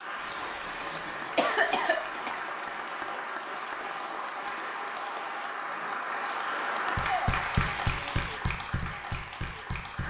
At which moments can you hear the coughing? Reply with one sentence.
You can hear the coughing from 0.2 to 2.4 s and from 7.5 to 8.6 s.